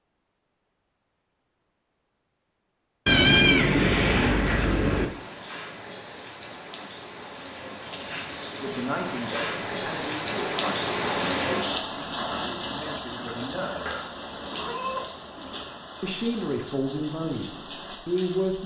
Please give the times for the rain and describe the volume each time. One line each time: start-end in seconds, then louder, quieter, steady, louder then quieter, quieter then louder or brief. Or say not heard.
4.3-18.6 louder then quieter.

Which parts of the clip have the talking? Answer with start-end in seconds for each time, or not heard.
8.6-13.9, 16.0-18.6.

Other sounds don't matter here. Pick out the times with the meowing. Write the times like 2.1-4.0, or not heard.
3.0-5.0, 13.8-15.7.